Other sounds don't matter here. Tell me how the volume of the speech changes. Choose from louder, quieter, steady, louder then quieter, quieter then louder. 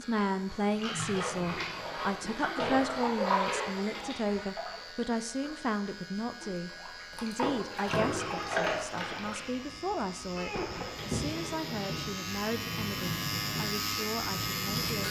quieter.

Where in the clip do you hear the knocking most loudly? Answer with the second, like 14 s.
11 s.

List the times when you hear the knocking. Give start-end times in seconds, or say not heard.
1.3-2.5, 10.3-11.0.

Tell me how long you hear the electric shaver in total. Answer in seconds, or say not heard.
15 s.